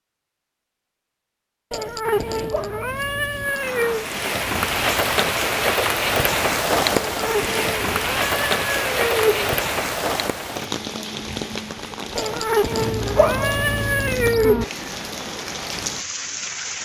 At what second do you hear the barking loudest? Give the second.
13 s.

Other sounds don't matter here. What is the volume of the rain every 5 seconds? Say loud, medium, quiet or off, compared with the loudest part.
loud, loud, medium, medium.